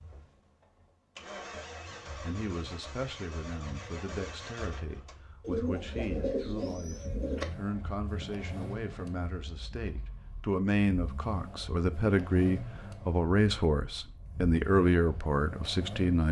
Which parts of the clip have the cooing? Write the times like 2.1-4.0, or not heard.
5.4-7.5.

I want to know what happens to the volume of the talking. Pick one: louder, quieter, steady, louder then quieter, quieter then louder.
louder.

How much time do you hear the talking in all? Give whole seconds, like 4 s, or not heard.
14 s.